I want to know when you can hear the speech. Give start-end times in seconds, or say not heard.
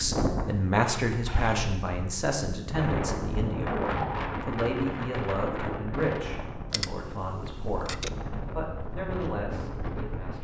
0.0-10.3.